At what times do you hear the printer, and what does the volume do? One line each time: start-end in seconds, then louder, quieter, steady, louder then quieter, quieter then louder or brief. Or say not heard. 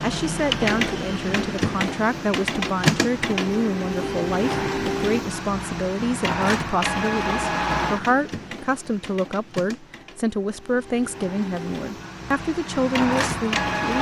0.0-13.9 quieter then louder.